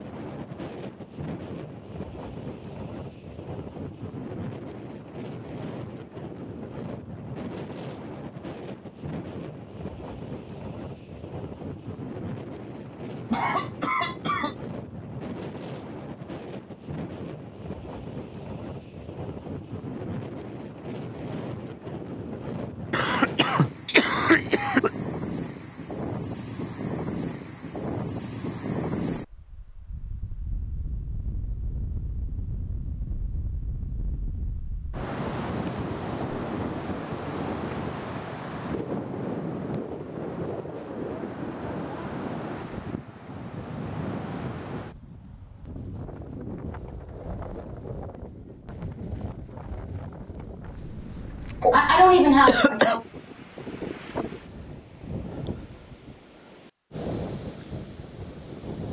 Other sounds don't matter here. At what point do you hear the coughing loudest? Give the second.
52 s.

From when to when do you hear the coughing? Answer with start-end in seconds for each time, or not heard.
12.8-14.6, 22.9-24.9, 51.6-53.0.